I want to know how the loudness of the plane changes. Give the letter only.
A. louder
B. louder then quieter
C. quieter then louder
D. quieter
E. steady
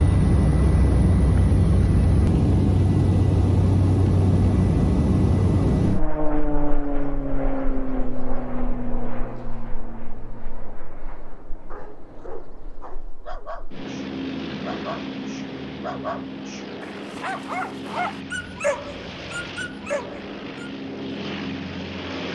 C.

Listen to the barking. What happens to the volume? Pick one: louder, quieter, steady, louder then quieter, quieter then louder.
louder.